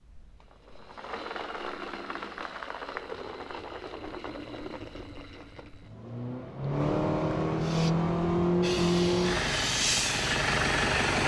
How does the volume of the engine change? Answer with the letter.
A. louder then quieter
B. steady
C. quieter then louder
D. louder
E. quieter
D.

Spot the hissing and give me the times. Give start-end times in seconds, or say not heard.
7.5-11.2.